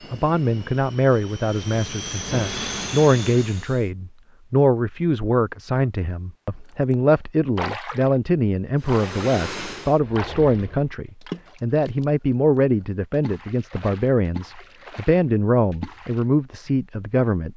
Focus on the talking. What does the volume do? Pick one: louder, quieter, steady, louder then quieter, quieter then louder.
steady.